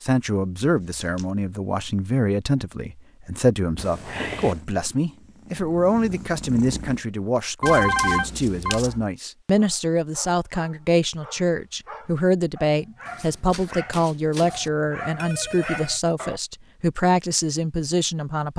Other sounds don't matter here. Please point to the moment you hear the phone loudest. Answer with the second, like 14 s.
8 s.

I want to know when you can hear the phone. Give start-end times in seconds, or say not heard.
3.8-4.6, 7.6-8.8, 15.0-16.0.